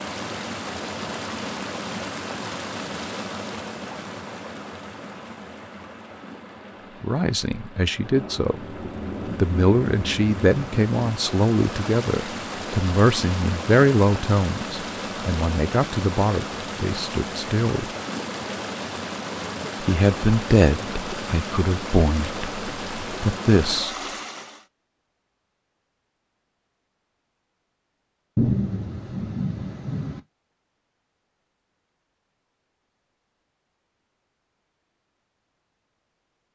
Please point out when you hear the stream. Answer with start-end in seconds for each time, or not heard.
0.0-24.6.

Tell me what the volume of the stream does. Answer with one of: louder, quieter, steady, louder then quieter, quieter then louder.
quieter then louder.